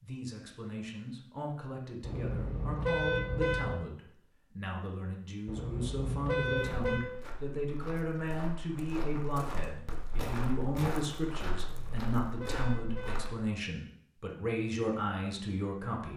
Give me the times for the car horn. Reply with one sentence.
The car horn can be heard from 2.0 to 3.8 s, from 5.5 to 7.0 s and from 11.6 to 13.3 s.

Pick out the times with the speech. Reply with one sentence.
You can hear the speech from 0.0 to 16.1 s.